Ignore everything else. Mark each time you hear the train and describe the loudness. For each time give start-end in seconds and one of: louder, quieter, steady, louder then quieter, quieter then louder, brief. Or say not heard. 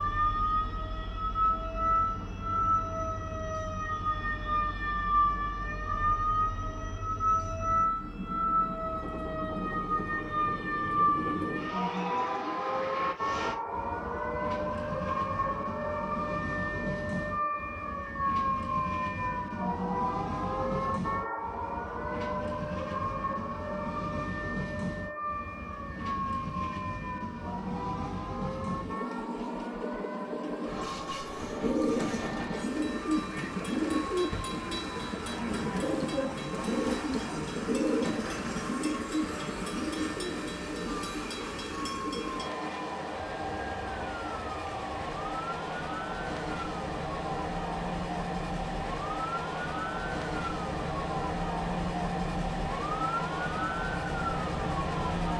0.0-55.3 louder.